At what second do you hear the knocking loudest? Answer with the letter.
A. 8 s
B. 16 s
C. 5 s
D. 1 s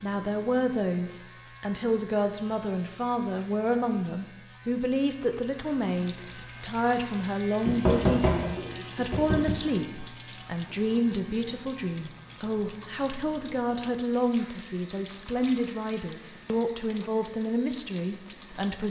A.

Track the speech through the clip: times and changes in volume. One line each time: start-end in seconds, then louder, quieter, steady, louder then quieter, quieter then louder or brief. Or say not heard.
0.0-18.8 steady.